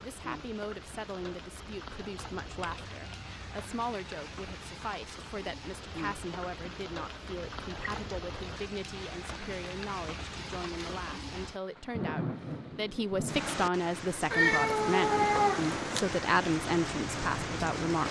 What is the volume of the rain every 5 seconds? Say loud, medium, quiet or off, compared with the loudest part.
medium, medium, loud, loud.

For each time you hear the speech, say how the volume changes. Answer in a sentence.
You can hear the speech from 0.0 to 18.0 s, getting louder.